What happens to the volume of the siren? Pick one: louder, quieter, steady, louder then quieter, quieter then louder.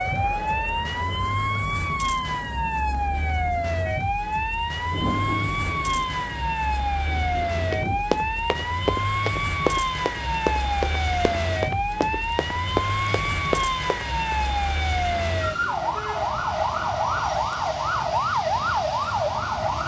steady.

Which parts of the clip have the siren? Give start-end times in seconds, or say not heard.
0.0-19.8.